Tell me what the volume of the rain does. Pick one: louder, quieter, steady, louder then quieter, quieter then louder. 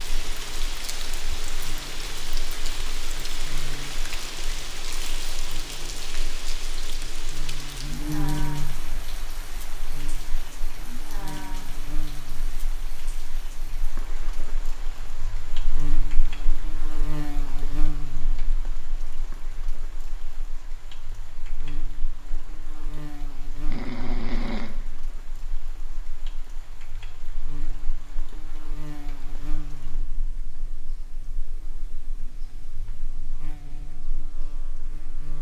quieter.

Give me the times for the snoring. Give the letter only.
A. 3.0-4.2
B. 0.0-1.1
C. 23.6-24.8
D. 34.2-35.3
C.